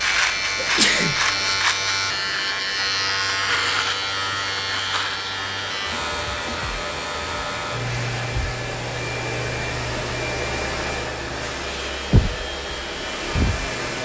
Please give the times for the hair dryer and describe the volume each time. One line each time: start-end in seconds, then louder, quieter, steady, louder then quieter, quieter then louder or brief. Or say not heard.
0.0-14.0 louder.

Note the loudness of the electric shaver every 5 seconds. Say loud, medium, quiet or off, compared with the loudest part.
loud, medium, quiet.